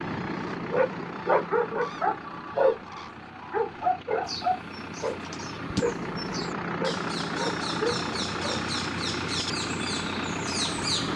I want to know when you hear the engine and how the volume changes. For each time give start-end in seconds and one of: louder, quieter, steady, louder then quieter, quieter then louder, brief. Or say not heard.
0.0-11.1 quieter then louder.